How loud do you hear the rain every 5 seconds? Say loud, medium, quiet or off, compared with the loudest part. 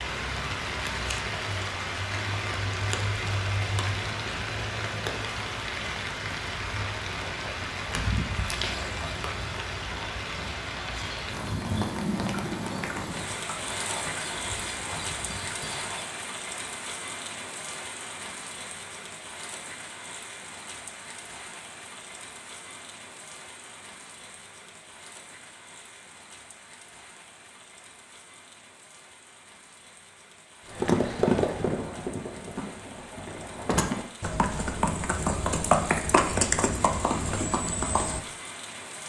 loud, loud, loud, medium, quiet, quiet, quiet, medium.